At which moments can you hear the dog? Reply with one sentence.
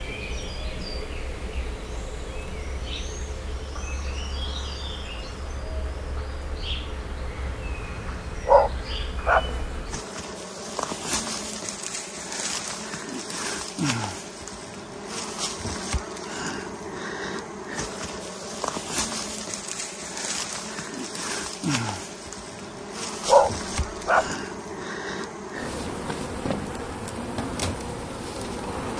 You can hear the dog from 8.4 to 9.5 s and from 23.2 to 24.4 s.